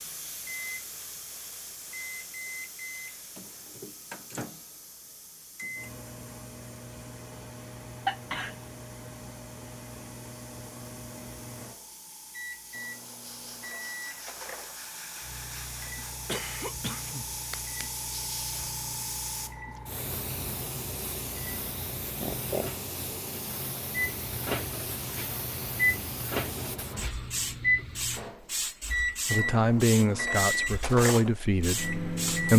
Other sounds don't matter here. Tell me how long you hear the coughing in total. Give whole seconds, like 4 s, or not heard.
3 s.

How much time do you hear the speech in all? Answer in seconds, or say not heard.
3 s.